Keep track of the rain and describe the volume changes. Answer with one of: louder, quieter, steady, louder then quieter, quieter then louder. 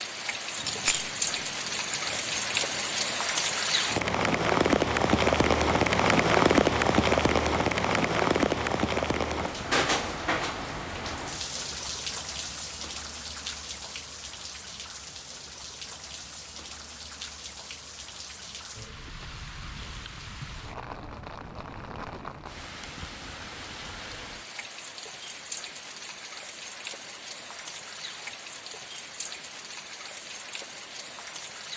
quieter.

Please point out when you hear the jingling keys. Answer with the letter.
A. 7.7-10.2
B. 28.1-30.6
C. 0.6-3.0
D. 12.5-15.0
C.